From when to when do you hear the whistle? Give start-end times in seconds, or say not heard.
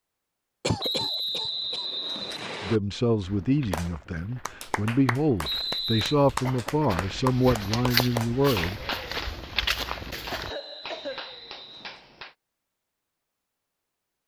0.8-2.8, 5.4-6.2, 10.4-12.1.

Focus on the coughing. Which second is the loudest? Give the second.
1 s.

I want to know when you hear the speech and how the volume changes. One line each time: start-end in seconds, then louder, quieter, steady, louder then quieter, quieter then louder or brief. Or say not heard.
2.6-8.8 steady.